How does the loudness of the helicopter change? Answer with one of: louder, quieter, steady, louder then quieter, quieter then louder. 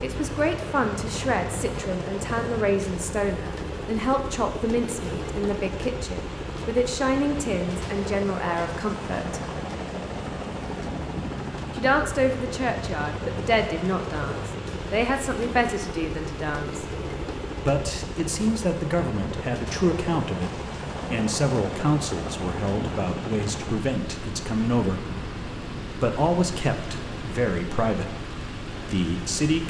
steady.